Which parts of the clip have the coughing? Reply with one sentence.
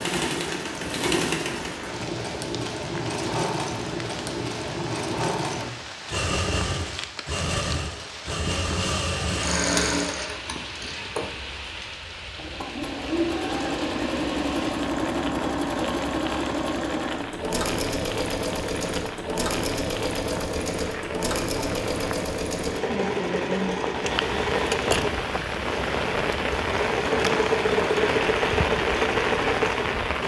You can't hear the coughing here.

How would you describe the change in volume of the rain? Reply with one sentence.
The loudness of the rain goes up.